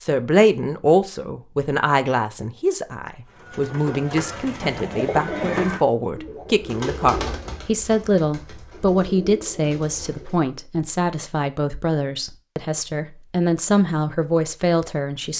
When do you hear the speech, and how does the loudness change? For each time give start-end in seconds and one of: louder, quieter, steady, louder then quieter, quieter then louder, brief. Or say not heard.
0.0-15.3 steady.